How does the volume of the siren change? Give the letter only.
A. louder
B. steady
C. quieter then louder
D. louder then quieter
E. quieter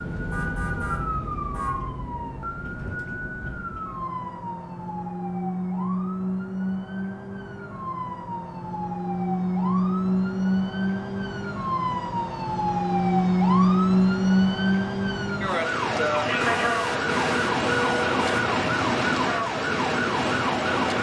A.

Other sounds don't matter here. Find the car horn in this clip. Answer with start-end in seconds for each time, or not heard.
0.3-1.9, 16.4-18.4.